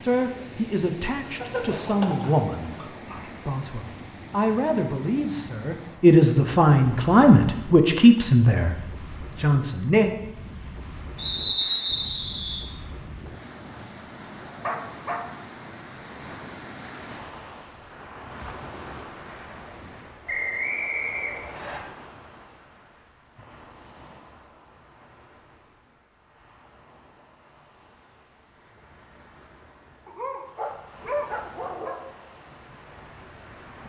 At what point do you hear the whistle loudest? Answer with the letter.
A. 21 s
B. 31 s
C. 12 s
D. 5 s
C.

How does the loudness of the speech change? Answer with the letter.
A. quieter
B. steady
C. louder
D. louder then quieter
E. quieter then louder
C.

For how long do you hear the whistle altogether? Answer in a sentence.
The whistle can be heard for 3 seconds in total.